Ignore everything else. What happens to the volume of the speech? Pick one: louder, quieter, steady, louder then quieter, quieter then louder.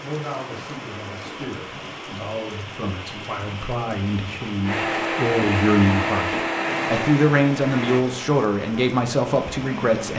louder.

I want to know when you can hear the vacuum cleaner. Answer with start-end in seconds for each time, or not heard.
4.7-8.1.